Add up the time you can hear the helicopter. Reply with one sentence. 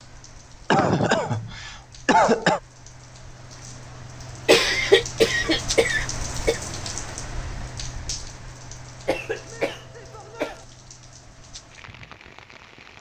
You can't hear the helicopter here.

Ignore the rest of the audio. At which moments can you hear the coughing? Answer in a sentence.
You can hear the coughing from 0.7 to 2.6 s, from 4.5 to 6.6 s and from 9.1 to 10.6 s.